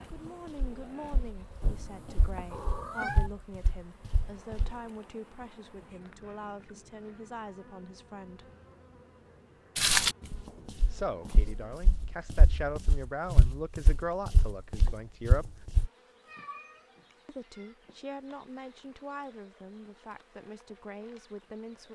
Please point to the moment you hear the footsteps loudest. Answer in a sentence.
The volume of the footsteps peaks at 10 seconds.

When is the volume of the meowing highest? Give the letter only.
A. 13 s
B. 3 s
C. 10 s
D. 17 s
B.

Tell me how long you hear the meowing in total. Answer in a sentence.
You can hear the meowing for 3 seconds altogether.